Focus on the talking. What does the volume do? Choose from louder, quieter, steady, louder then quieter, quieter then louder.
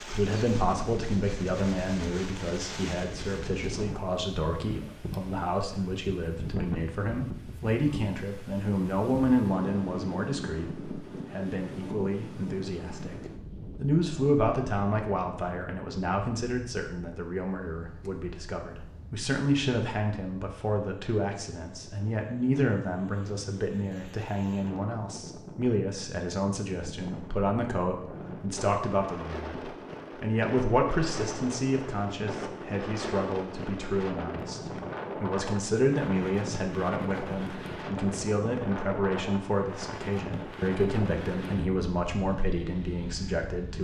steady.